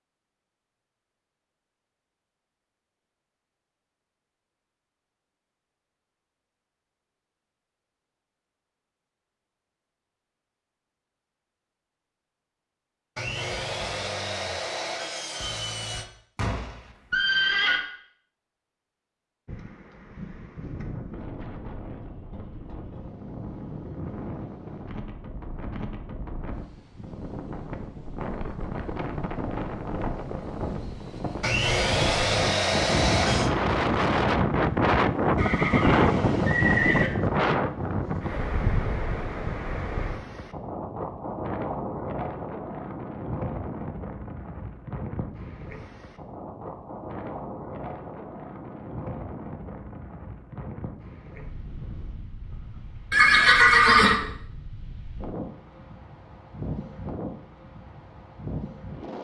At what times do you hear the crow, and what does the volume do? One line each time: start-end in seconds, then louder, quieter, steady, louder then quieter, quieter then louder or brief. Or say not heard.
not heard.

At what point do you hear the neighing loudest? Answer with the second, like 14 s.
54 s.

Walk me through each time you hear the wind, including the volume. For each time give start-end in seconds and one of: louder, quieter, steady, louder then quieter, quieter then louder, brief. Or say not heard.
19.4-59.1 louder then quieter.